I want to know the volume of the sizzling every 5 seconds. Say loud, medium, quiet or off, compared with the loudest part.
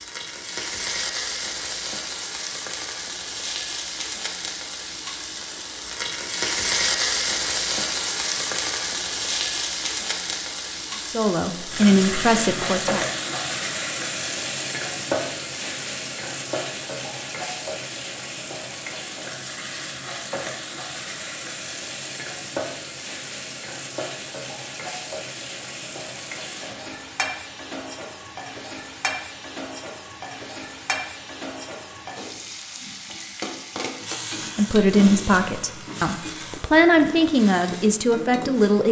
medium, loud, loud, medium, medium, medium, medium, medium.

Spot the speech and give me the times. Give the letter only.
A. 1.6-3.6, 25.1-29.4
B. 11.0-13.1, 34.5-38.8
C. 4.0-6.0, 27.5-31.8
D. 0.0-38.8
B.